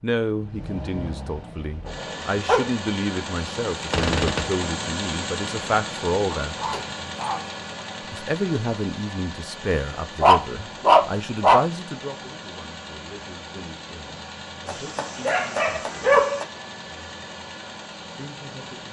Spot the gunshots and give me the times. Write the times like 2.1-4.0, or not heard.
3.8-4.7.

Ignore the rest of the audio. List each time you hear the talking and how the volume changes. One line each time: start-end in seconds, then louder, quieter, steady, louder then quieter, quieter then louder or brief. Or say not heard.
0.0-6.7 louder
8.1-16.2 quieter
18.1-18.8 brief.